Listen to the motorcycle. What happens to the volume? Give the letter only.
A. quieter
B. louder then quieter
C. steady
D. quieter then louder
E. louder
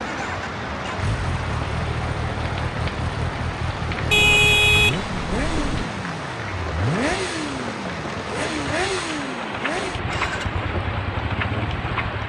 C.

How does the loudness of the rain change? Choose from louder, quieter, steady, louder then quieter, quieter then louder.
steady.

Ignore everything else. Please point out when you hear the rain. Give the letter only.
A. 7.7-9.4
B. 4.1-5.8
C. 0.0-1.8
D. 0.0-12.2
D.